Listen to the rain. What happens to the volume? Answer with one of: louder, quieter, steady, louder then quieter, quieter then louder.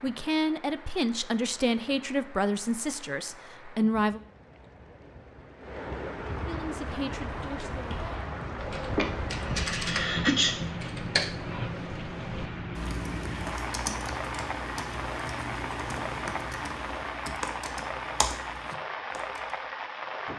louder.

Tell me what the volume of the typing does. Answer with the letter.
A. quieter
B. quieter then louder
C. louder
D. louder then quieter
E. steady
E.